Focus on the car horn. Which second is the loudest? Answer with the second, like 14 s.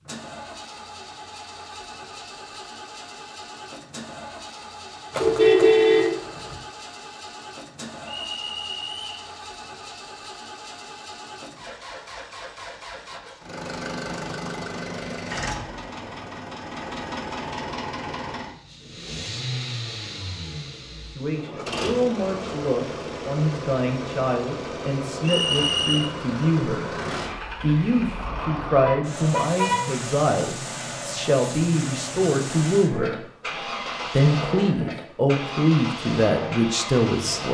6 s.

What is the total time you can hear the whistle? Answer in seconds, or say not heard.
2 s.